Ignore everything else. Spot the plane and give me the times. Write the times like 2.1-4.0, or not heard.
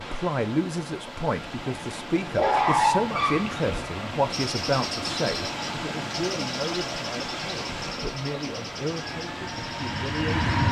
8.9-10.6.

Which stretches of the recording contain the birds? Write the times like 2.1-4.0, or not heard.
4.3-10.6.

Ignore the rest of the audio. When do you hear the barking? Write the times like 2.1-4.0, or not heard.
2.4-3.6.